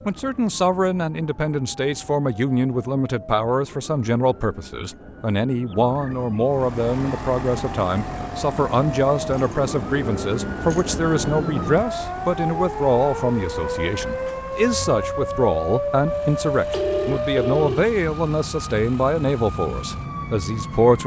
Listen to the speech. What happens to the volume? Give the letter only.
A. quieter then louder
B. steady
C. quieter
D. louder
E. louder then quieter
B.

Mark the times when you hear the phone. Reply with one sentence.
You can hear the phone from 5.7 to 6.5 s and from 16.6 to 17.8 s.